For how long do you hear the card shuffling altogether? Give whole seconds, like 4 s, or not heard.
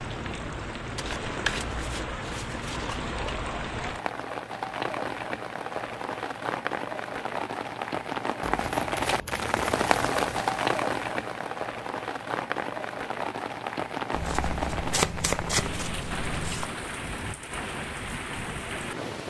7 s.